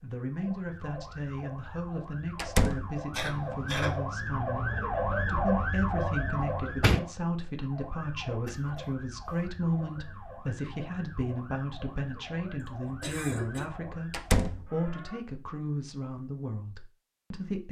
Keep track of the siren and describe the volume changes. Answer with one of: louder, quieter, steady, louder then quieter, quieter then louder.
louder then quieter.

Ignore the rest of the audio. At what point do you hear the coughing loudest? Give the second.
4 s.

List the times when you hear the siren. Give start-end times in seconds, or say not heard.
0.2-15.2.